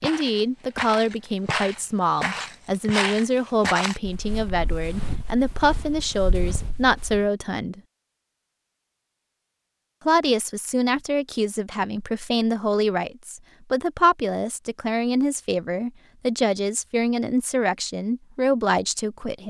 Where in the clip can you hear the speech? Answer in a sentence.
The speech can be heard from 0.0 to 7.8 s and from 10.1 to 19.4 s.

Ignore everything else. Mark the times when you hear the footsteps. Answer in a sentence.
The footsteps can be heard from 0.0 to 7.3 s.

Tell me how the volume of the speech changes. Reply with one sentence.
The volume of the speech stays about the same.